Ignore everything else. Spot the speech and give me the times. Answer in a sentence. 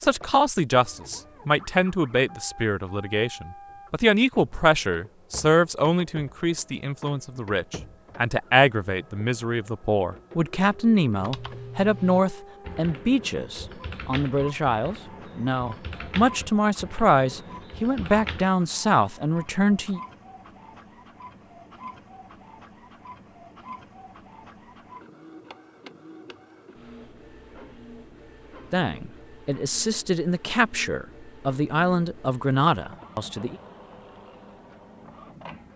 The speech can be heard from 0.0 to 20.0 s and from 28.7 to 33.6 s.